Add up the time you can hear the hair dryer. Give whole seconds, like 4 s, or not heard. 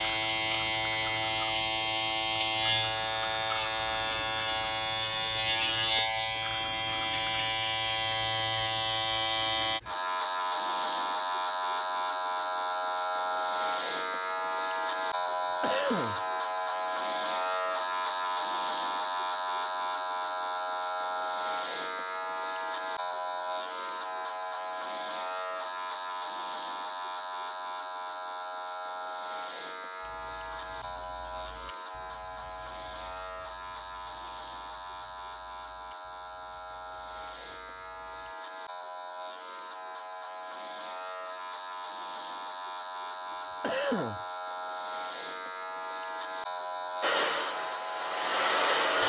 2 s.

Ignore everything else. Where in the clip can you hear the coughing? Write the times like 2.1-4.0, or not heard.
15.3-16.2, 43.3-44.2.